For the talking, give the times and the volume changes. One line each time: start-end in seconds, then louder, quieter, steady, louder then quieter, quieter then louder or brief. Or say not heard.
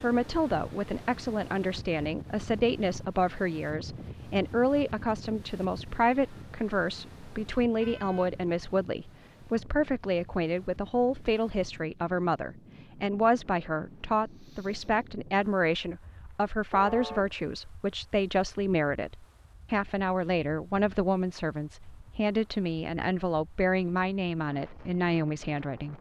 0.0-25.9 steady.